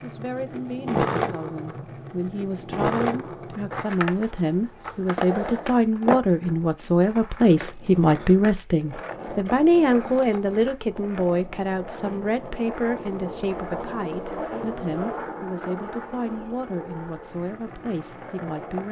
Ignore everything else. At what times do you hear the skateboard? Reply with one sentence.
You can hear the skateboard from 0.0 to 18.8 s.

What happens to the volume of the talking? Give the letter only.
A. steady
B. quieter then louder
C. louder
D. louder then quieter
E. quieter
D.